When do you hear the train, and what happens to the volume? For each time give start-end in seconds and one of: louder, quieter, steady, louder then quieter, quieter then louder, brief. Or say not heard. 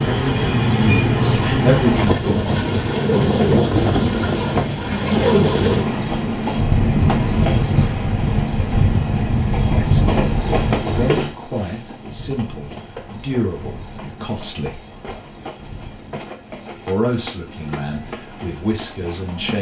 0.0-19.5 quieter.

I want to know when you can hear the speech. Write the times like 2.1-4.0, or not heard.
0.1-2.6, 9.7-14.8, 16.9-19.5.